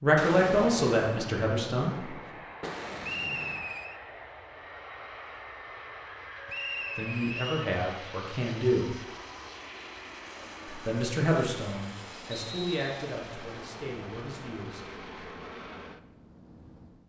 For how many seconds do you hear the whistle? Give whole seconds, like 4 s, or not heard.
3 s.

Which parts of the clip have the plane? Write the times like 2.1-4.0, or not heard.
1.8-17.0.